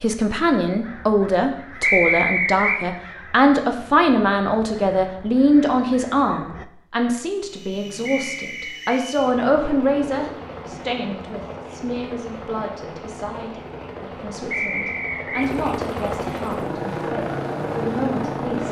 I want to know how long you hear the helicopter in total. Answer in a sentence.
The helicopter can be heard for 11 seconds in total.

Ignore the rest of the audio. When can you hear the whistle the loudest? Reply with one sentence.
The loudest moment of the whistle is at 2 seconds.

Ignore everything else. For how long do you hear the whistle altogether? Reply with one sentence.
The whistle can be heard for 3 seconds in total.